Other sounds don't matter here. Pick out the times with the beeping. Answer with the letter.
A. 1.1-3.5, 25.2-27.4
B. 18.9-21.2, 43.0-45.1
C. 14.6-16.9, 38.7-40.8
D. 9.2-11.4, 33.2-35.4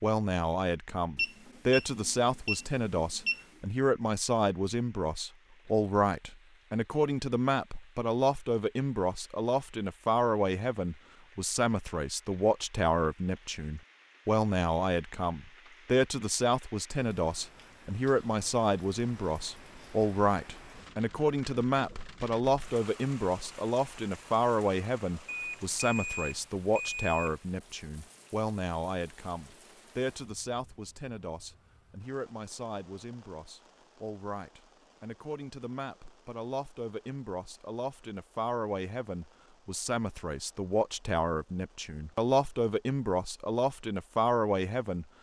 A.